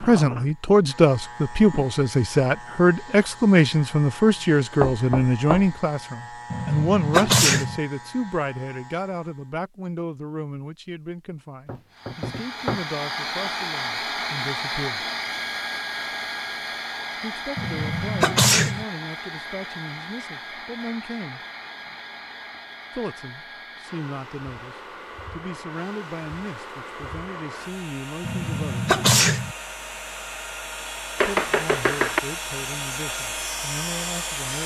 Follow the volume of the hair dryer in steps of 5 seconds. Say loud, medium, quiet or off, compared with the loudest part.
off, off, loud, loud, medium, medium, loud.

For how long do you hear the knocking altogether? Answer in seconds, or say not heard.
3 s.